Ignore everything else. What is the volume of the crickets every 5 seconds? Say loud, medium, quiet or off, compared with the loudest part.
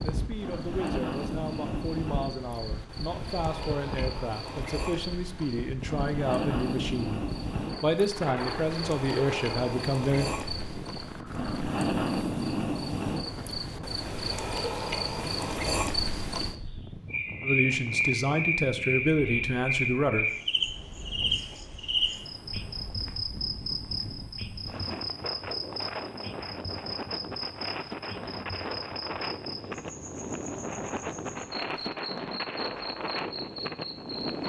medium, medium, loud, loud, loud, medium, medium.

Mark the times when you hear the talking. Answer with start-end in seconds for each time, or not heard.
0.0-7.2, 7.8-10.3, 17.4-20.2.